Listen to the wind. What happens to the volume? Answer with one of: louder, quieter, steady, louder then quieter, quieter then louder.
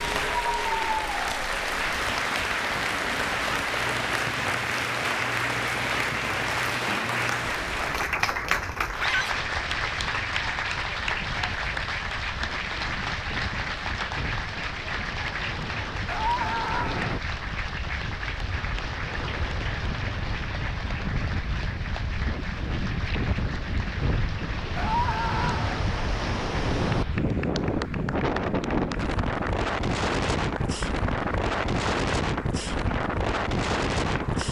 louder.